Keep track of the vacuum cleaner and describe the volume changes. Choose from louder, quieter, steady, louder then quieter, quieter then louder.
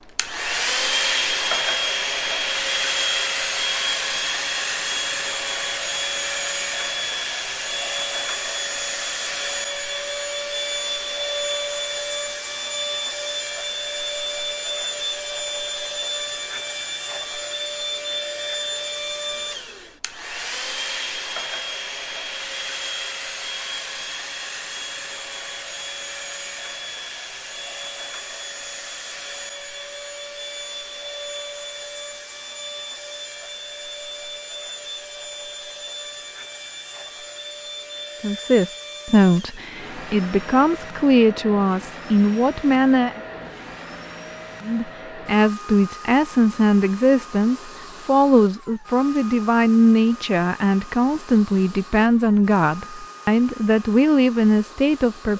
quieter.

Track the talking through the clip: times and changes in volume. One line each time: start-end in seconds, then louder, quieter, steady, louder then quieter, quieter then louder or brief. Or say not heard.
38.2-43.2 quieter then louder
44.6-55.3 steady.